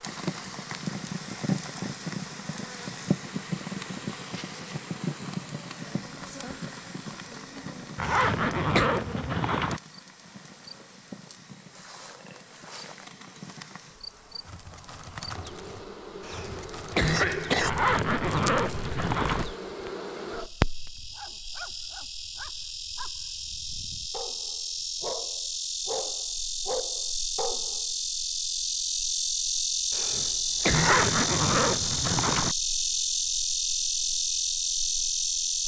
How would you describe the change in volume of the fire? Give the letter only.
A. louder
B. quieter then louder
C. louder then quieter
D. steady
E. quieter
B.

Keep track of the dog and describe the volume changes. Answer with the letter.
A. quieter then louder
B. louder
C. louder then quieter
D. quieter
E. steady
B.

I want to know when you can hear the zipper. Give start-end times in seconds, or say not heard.
8.0-9.8, 17.6-19.4, 30.7-32.5.